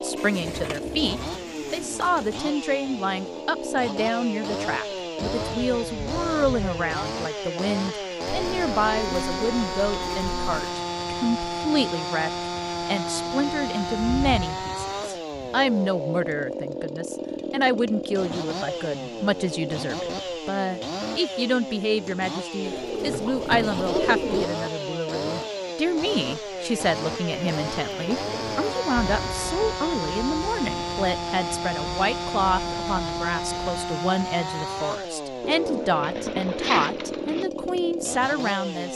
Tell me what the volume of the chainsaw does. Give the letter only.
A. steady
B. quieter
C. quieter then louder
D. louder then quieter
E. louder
A.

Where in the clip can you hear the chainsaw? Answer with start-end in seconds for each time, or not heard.
0.0-38.9.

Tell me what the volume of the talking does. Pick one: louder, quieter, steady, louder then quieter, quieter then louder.
steady.